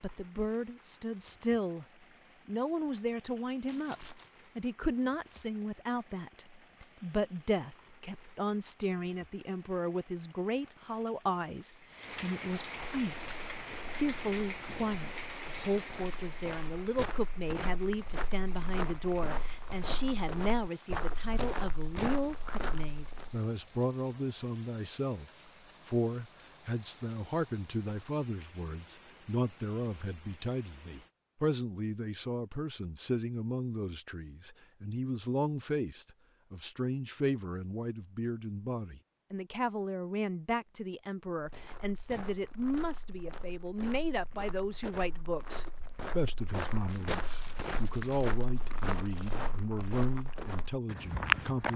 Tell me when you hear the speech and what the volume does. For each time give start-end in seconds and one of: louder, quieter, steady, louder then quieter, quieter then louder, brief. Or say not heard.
0.0-1.9 brief
2.5-51.7 steady.